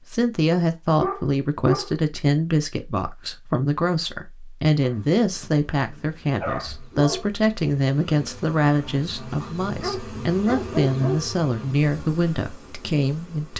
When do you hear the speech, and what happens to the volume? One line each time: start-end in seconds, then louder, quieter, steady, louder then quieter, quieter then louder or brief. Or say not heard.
0.1-13.5 steady.